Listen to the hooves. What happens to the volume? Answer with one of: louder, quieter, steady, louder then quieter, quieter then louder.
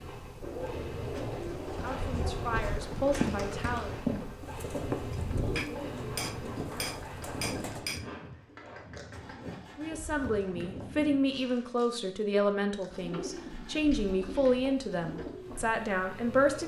quieter.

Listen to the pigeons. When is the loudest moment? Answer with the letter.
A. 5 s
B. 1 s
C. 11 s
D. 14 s
A.